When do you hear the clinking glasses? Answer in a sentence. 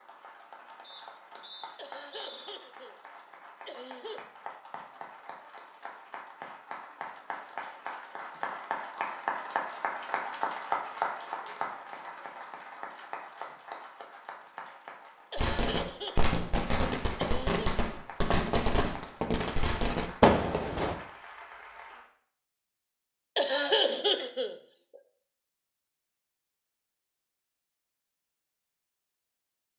You can't hear the clinking glasses here.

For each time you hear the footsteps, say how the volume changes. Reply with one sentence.
You can't hear the footsteps here.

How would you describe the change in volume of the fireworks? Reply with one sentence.
The loudness of the fireworks goes up.